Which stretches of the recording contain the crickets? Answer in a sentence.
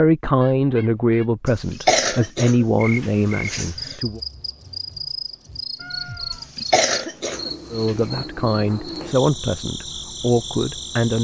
You can hear the crickets from 2.8 to 11.2 s.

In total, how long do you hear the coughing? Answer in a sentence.
The coughing can be heard for 4 seconds in total.